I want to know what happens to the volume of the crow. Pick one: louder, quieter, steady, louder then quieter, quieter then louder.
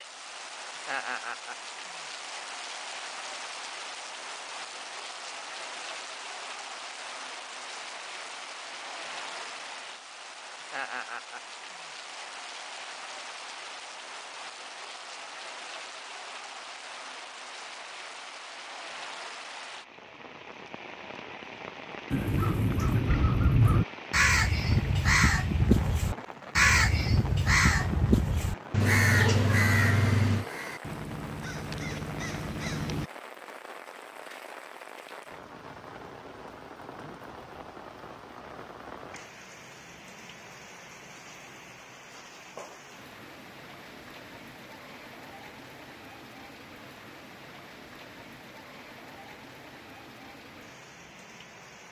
quieter.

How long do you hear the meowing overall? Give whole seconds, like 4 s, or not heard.
2 s.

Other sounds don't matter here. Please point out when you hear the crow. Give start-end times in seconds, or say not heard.
22.1-33.1.